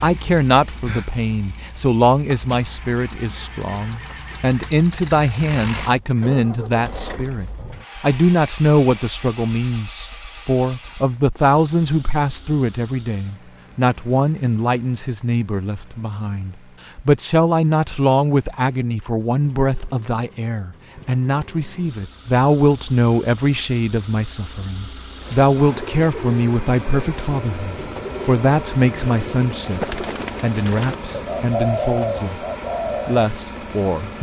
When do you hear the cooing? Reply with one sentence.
You can hear the cooing from 25.1 to 33.2 s.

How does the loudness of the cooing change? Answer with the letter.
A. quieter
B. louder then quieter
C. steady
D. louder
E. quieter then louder
D.